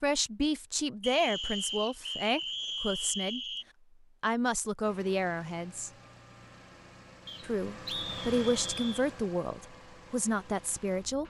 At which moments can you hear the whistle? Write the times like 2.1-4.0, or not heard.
1.0-3.6, 7.2-9.1.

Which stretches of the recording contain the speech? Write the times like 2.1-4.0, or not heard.
0.0-3.4, 4.2-5.9, 7.4-11.2.